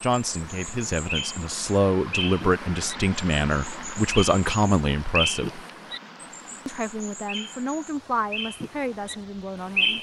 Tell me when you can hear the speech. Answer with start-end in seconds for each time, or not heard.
0.0-5.6, 6.7-9.9.